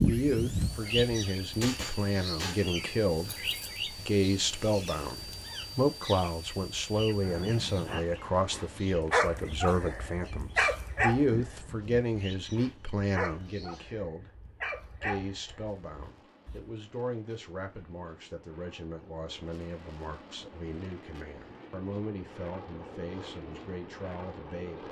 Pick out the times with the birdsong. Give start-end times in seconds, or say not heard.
0.0-13.9.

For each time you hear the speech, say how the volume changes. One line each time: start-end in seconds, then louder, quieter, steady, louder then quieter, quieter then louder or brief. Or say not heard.
0.0-24.8 quieter.